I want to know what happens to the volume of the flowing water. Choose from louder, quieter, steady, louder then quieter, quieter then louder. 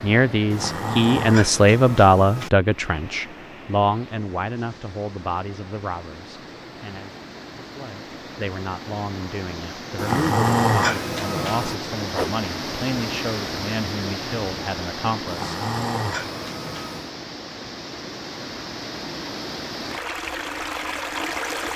louder.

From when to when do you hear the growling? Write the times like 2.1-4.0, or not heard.
0.5-2.5, 9.9-11.8, 15.2-17.1.